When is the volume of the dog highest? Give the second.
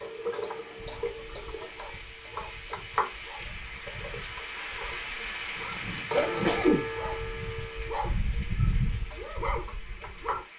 9 s.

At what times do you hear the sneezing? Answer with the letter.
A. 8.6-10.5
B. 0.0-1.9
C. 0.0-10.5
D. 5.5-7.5
D.